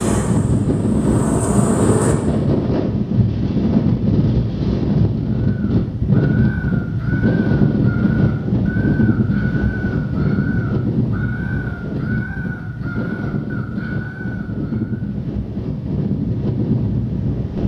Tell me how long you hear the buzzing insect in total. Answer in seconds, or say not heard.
2 s.